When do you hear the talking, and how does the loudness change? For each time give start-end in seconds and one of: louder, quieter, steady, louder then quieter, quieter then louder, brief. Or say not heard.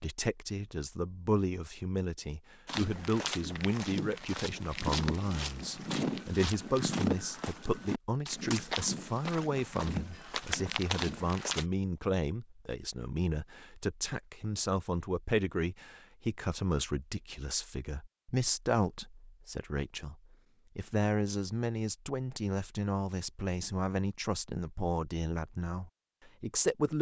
0.0-20.1 steady
20.8-26.9 quieter.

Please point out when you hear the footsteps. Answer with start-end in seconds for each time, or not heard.
2.6-11.7.